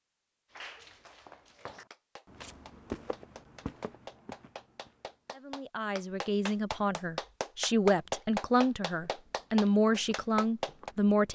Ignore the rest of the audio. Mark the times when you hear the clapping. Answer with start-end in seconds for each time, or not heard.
0.5-10.9.